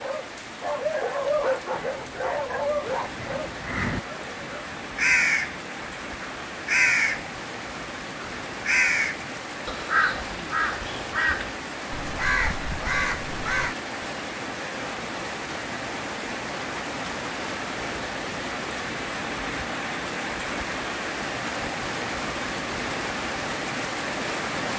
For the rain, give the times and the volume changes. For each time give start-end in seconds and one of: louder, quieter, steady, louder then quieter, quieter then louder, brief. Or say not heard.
0.0-24.7 louder.